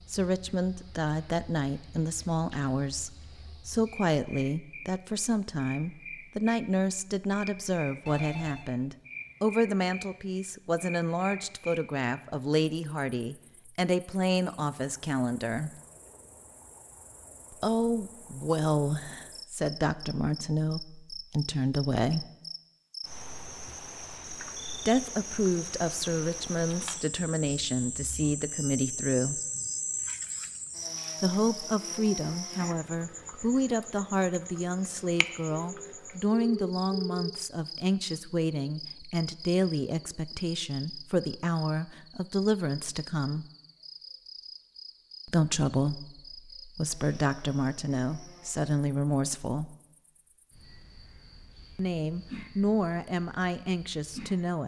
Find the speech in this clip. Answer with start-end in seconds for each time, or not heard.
0.1-15.7, 17.5-22.2, 24.8-29.4, 31.2-43.5, 45.2-49.8, 51.8-54.6.